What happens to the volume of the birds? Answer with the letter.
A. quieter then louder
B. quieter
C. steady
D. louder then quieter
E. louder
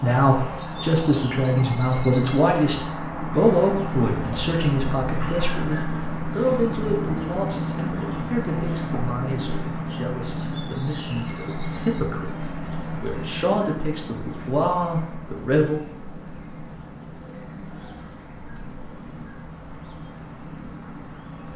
B.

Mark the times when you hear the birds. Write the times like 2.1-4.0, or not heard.
0.0-21.5.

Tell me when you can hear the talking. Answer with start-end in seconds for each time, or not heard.
0.0-15.8.